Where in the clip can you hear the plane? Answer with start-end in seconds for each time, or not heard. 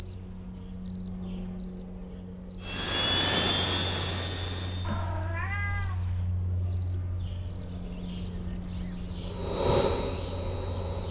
2.6-5.1, 9.1-11.0.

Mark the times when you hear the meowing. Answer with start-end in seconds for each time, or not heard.
4.8-6.3.